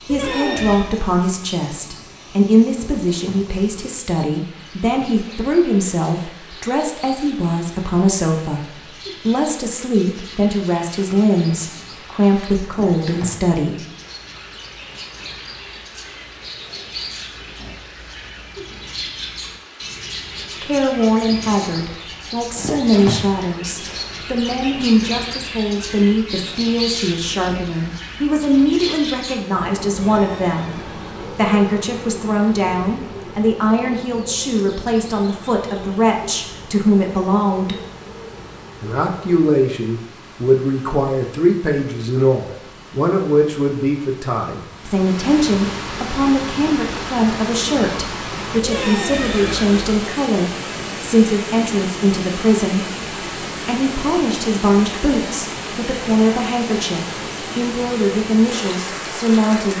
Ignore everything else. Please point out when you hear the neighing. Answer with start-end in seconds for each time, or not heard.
0.1-0.9, 29.9-31.1, 48.6-50.0.